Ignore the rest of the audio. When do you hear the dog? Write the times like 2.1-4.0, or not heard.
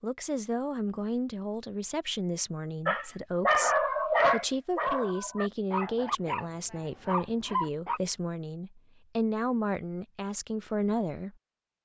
2.9-8.0.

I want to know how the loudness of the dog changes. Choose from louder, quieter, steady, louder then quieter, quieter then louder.
quieter.